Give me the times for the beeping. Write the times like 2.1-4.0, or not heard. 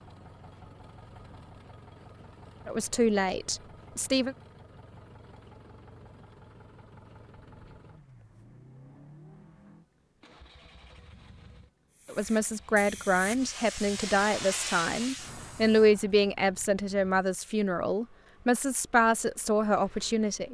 not heard.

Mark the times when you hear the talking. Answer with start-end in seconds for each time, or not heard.
2.6-4.3, 12.1-20.4.